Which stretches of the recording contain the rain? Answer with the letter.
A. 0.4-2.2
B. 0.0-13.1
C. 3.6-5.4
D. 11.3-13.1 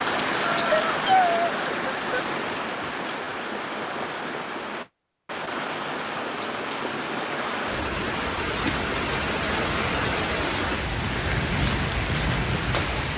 B.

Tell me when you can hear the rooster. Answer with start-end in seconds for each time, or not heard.
0.4-2.2.